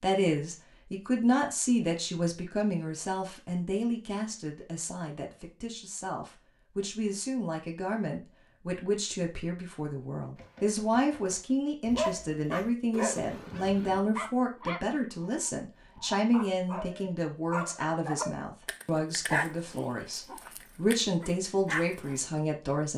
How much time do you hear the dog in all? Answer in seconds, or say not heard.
10 s.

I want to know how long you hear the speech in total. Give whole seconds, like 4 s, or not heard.
23 s.